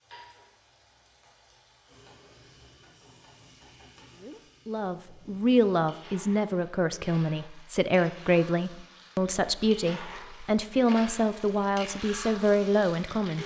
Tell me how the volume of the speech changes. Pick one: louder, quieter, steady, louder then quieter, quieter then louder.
steady.